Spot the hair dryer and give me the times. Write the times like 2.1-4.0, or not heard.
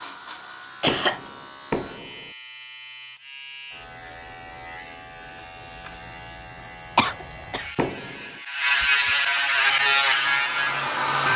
9.5-11.3.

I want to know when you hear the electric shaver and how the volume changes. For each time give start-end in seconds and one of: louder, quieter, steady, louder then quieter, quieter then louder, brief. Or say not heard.
0.0-11.1 louder.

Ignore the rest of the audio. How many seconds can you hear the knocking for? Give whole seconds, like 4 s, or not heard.
2 s.